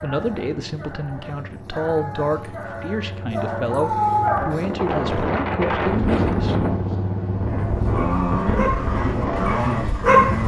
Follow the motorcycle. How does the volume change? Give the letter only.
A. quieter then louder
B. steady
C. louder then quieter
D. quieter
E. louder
E.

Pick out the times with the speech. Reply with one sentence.
You can hear the speech from 0.0 to 6.5 s.